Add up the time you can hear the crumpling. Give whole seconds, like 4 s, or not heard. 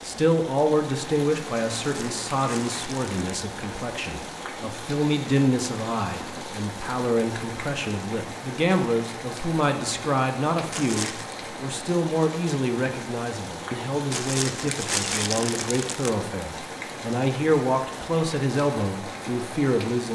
4 s.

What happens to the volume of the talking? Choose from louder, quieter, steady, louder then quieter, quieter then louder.
steady.